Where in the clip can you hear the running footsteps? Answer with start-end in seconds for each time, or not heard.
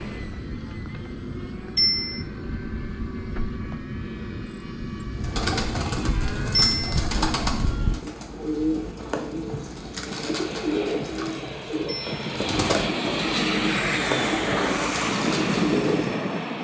not heard.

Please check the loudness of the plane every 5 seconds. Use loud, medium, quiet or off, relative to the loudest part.
medium, medium, loud, loud.